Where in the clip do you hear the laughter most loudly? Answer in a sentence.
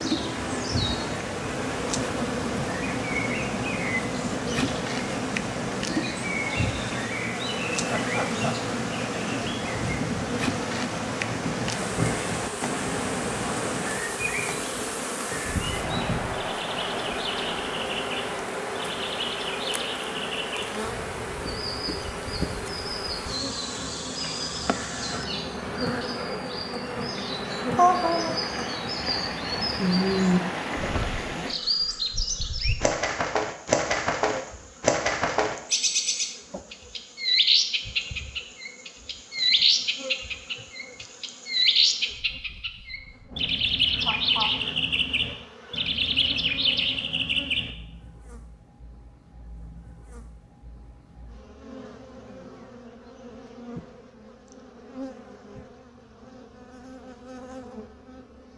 The volume of the laughter peaks at 28 seconds.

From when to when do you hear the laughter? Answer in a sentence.
The laughter can be heard from 7.8 to 8.6 s, from 27.8 to 28.4 s and from 44.0 to 44.5 s.